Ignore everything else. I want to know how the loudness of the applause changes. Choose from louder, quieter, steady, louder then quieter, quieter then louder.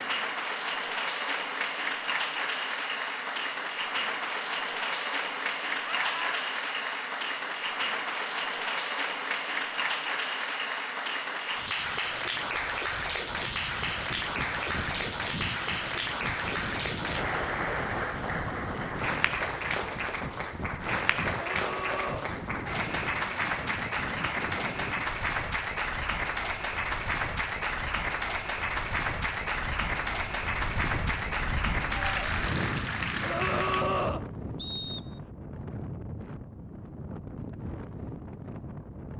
steady.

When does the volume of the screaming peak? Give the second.
34 s.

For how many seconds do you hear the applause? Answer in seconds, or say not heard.
34 s.